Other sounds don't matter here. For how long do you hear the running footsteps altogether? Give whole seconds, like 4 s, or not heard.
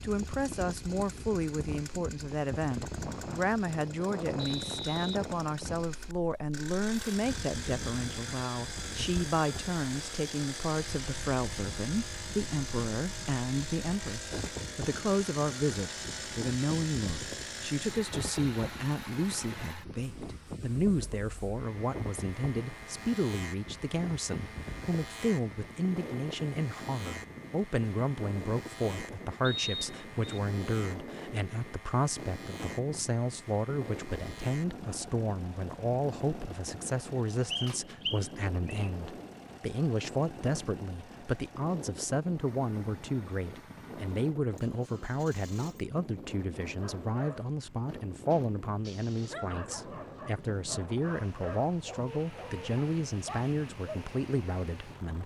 not heard.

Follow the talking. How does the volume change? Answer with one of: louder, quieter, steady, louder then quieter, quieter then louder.
steady.